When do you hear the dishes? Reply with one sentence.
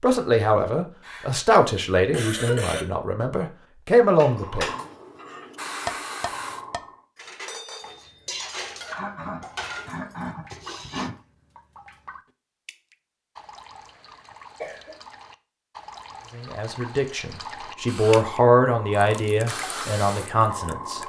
You can hear the dishes from 4.2 to 11.1 s.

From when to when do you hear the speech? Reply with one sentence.
You can hear the speech from 0.0 to 4.7 s and from 16.4 to 21.0 s.